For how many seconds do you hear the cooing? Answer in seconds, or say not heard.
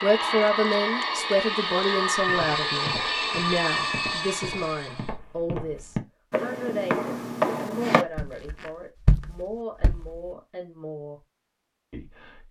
not heard.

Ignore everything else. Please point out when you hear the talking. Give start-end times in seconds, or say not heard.
0.0-11.2, 11.9-12.4.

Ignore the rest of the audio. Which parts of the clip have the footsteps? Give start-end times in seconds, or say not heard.
2.1-10.2.